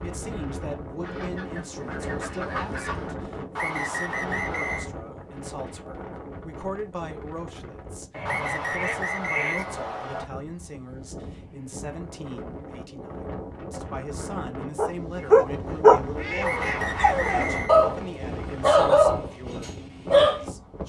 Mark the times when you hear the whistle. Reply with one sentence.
You can hear the whistle from 3.5 to 4.9 s, from 8.2 to 10.2 s and from 16.4 to 17.8 s.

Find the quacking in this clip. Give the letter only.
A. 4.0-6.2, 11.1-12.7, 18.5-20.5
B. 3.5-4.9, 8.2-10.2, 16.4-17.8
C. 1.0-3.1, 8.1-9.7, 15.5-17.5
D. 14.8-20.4
C.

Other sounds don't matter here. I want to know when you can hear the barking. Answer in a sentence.
You can hear the barking from 14.8 to 20.4 s.